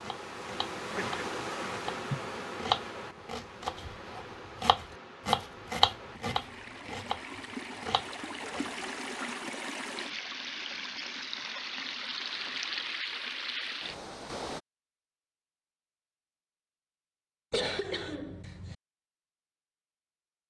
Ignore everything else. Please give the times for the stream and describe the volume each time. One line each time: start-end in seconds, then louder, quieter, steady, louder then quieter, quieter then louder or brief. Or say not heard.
0.0-14.6 quieter then louder.